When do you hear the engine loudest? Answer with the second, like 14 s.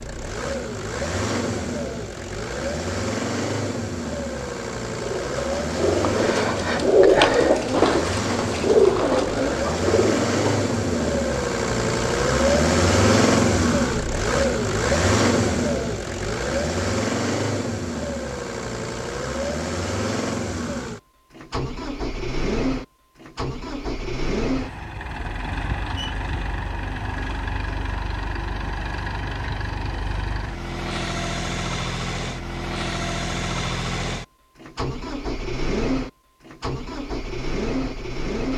13 s.